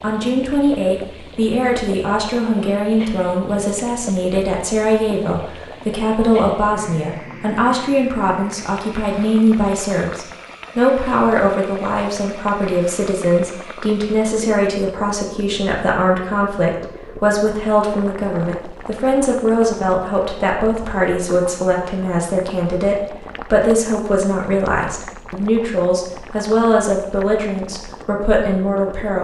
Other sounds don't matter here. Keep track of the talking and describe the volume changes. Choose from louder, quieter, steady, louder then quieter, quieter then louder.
steady.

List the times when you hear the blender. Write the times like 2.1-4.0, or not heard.
not heard.